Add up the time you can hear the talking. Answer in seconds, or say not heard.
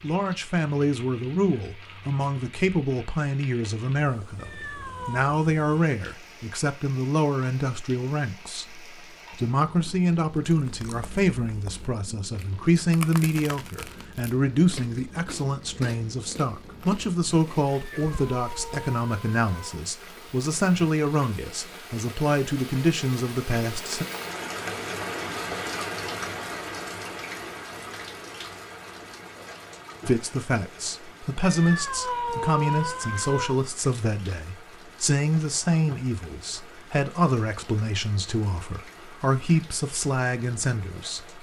35 s.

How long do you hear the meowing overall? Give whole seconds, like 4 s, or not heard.
5 s.